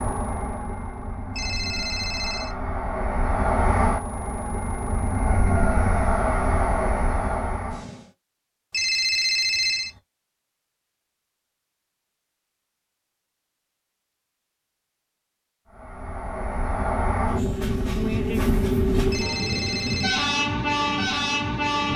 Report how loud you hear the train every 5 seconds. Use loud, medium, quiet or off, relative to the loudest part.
medium, loud, off, loud, loud.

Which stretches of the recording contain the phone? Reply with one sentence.
You can hear the phone from 1.4 to 2.5 s, from 8.7 to 9.9 s and from 19.1 to 20.2 s.